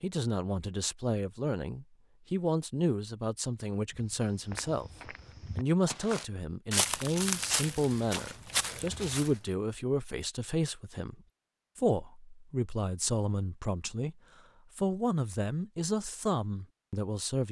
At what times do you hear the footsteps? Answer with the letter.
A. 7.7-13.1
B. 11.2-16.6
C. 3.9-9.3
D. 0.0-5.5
C.